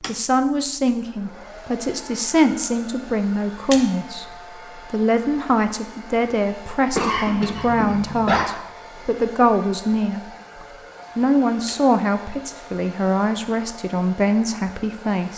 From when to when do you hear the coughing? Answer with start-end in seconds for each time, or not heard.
7.0-8.4.